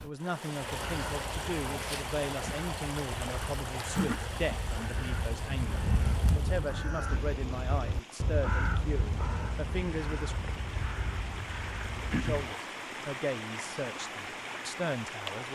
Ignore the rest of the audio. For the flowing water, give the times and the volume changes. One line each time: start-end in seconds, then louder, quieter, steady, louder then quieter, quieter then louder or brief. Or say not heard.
0.0-15.5 quieter then louder.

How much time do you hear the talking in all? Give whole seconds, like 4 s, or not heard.
14 s.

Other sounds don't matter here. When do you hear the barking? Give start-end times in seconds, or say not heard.
not heard.